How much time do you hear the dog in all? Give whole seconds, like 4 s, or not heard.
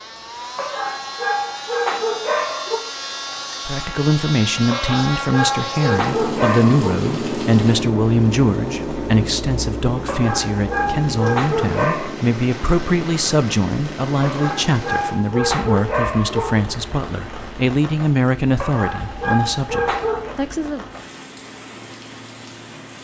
11 s.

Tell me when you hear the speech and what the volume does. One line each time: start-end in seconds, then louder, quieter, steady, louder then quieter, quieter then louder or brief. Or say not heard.
3.6-20.8 steady.